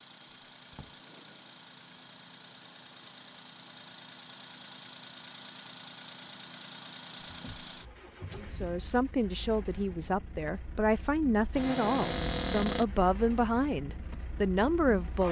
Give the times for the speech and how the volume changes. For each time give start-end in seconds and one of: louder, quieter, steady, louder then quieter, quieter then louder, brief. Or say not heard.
8.3-15.2 steady.